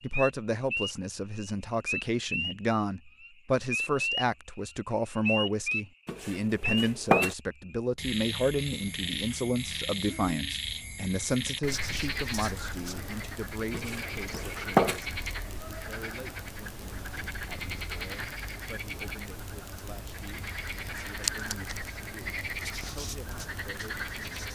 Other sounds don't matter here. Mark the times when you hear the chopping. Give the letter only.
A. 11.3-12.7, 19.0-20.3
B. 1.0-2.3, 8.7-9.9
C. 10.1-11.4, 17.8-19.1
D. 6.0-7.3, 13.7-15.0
D.